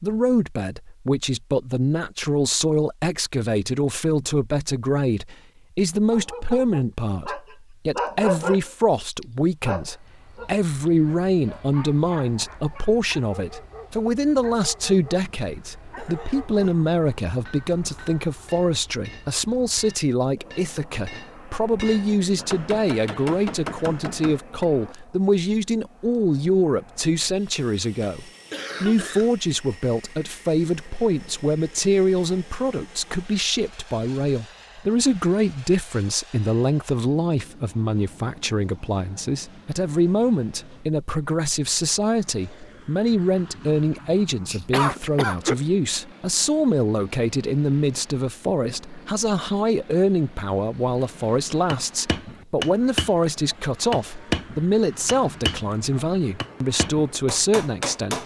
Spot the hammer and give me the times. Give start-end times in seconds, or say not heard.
17.2-24.6, 51.0-58.2.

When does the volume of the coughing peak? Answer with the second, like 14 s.
45 s.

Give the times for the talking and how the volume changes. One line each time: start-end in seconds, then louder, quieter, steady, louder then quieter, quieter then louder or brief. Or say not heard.
0.0-58.2 steady.